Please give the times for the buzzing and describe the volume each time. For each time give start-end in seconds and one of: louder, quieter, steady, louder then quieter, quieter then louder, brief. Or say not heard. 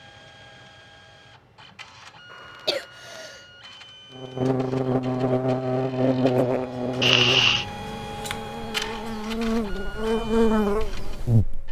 4.2-11.6 quieter then louder.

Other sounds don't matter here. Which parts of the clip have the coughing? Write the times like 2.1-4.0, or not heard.
2.3-3.5, 7.0-7.7.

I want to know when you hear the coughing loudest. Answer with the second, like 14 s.
7 s.